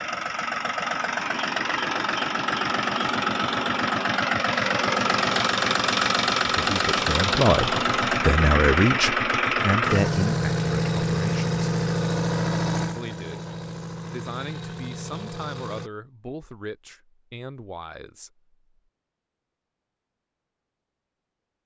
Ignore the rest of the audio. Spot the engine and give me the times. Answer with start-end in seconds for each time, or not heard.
0.0-15.9.